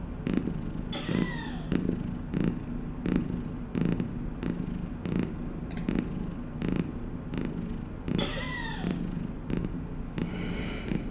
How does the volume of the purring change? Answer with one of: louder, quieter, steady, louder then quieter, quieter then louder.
steady.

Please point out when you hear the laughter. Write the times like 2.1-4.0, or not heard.
0.9-1.7, 8.2-8.9.